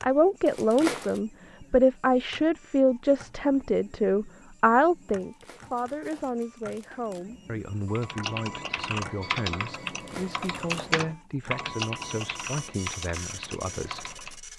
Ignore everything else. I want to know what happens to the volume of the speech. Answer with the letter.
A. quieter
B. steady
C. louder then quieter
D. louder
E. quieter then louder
A.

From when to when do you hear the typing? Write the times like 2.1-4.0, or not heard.
7.8-14.3.